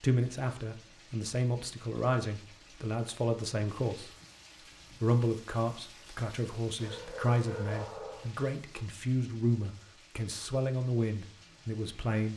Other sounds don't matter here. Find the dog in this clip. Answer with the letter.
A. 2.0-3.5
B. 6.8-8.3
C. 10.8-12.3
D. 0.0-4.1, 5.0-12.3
B.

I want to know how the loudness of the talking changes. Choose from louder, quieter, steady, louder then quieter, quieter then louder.
steady.